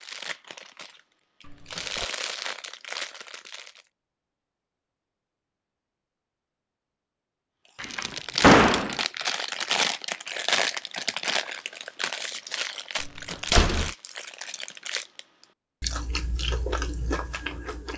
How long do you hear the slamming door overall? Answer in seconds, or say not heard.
3 s.